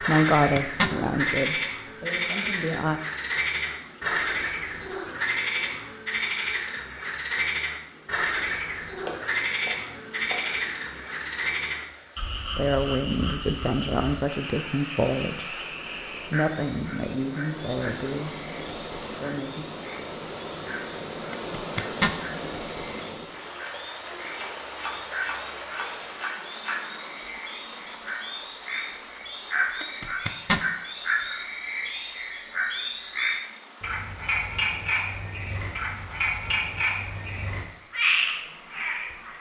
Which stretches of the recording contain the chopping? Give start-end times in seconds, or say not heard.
8.9-10.6, 24.3-26.9.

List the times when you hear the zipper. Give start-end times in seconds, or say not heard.
0.1-0.9, 21.3-22.1, 29.8-30.6.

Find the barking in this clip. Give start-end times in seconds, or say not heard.
not heard.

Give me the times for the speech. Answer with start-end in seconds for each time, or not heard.
0.0-3.0, 12.6-19.6.